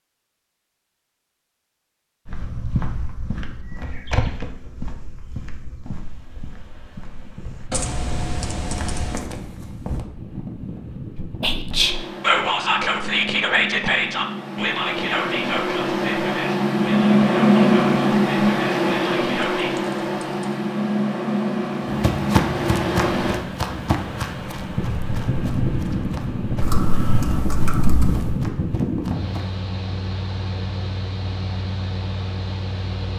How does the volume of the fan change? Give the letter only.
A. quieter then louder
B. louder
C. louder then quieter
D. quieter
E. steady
C.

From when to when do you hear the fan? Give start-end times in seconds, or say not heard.
5.8-33.1.